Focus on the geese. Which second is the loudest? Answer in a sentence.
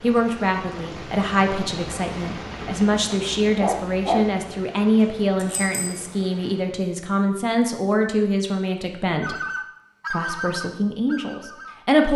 The volume of the geese peaks at 10 seconds.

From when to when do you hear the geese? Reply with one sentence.
The geese can be heard from 9.2 to 11.8 s.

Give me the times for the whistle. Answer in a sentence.
The whistle can't be heard in this clip.